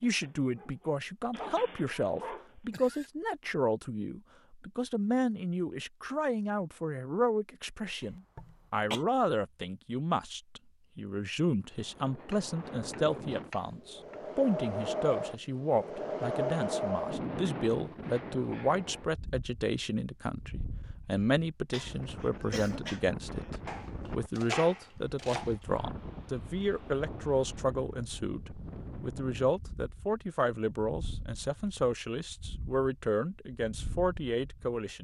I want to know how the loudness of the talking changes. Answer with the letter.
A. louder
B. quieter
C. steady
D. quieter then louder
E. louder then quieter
C.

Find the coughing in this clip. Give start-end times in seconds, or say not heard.
8.0-9.1, 21.7-23.6.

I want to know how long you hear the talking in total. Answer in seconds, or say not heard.
35 s.